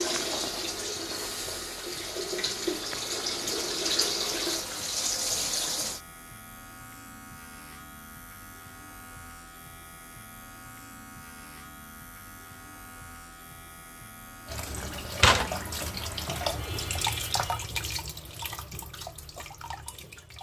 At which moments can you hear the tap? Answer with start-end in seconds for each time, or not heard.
0.0-6.0, 14.4-20.3.